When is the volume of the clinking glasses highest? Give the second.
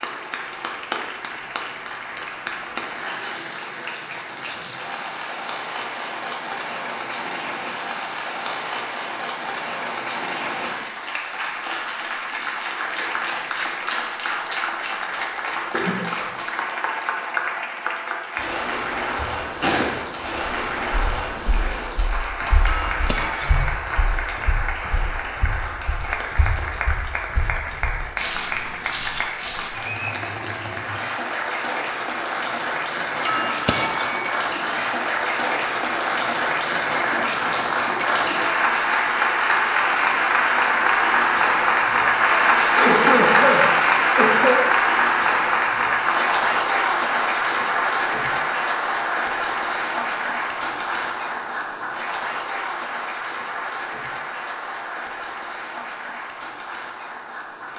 34 s.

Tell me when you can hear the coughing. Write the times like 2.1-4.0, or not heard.
15.7-16.3, 42.6-44.6.